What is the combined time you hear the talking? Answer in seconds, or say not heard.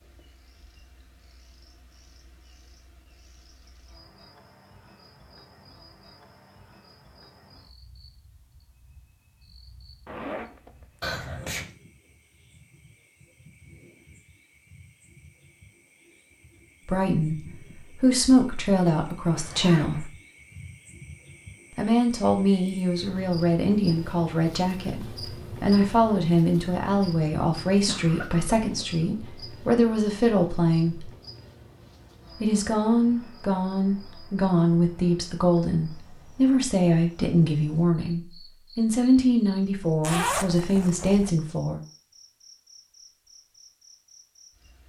21 s.